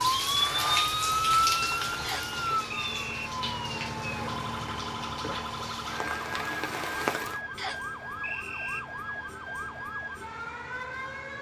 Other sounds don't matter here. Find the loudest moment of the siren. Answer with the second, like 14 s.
1 s.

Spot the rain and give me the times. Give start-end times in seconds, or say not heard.
0.0-7.4.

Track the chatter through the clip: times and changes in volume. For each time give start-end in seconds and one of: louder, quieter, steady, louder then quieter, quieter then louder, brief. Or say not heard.
not heard.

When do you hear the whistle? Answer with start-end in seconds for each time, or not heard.
2.0-3.3, 7.5-8.8.